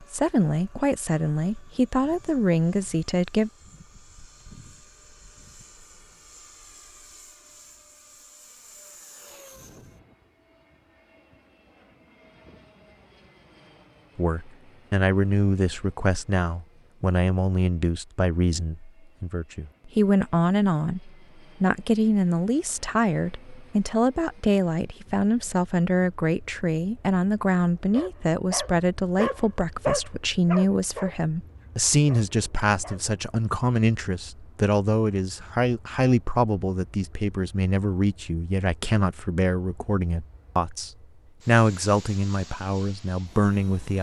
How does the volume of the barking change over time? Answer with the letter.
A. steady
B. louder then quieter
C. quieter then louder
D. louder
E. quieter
B.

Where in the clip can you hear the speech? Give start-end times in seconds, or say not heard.
0.0-3.5, 14.2-43.9.